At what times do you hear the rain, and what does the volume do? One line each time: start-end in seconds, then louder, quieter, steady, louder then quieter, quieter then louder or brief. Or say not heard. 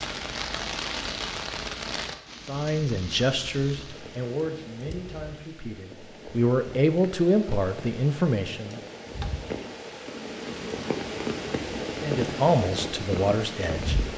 0.0-14.1 quieter then louder.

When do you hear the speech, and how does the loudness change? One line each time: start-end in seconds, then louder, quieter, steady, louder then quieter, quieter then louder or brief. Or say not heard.
2.5-8.8 quieter then louder
12.0-14.1 brief.